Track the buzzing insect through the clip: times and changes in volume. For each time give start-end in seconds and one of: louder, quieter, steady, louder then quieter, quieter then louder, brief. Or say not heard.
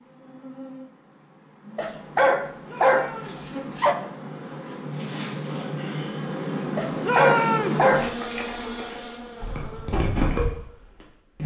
0.0-11.4 louder.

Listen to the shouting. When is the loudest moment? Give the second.
7 s.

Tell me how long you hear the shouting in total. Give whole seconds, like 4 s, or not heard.
2 s.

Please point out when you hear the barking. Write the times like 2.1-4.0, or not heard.
1.8-4.0, 6.8-8.5.